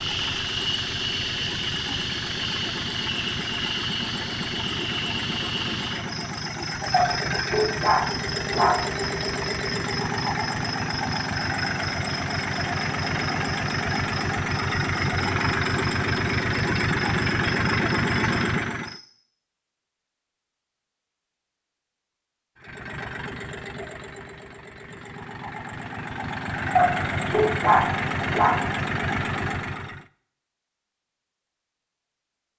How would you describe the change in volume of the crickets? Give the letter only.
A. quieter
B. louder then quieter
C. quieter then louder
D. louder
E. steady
A.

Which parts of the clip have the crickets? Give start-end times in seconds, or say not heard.
0.0-19.1.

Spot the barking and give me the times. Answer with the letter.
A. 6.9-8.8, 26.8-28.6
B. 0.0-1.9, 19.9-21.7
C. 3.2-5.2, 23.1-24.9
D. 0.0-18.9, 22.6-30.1
A.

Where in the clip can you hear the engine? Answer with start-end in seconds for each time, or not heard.
0.0-18.9, 22.6-30.1.